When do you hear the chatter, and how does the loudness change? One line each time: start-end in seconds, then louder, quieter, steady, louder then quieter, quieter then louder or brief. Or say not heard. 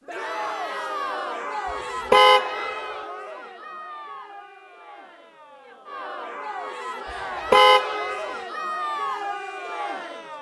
0.1-10.3 quieter then louder.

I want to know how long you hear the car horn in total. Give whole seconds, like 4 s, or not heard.
2 s.